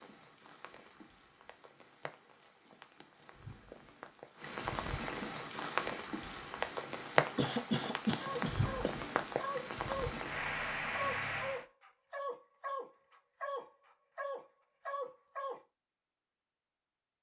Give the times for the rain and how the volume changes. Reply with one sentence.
You can hear the rain from 0.0 to 11.7 s, getting louder.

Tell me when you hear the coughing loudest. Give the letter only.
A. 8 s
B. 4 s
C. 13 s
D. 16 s
A.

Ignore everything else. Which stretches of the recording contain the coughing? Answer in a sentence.
You can hear the coughing from 7.3 to 8.9 s.